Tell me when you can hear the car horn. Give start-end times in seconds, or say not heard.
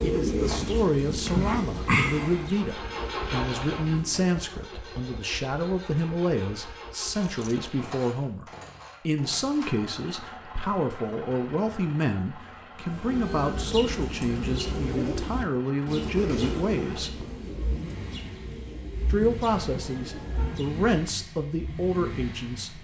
19.6-20.6.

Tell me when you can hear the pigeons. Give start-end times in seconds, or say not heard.
0.0-4.3, 12.8-20.9.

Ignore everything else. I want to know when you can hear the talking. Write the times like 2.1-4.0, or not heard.
0.0-8.4, 9.1-17.2, 19.1-22.8.